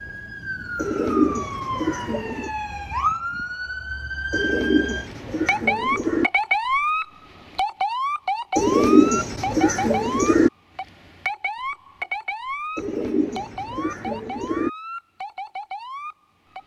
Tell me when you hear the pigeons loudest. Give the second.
9 s.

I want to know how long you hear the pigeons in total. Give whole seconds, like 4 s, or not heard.
8 s.